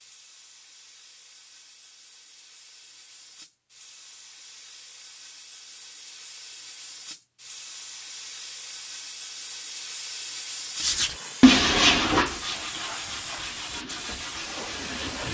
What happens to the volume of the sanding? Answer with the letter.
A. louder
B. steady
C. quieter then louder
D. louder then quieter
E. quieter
E.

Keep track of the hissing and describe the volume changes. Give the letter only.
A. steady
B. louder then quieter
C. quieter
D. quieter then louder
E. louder
E.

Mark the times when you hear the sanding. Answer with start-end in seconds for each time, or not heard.
10.8-15.3.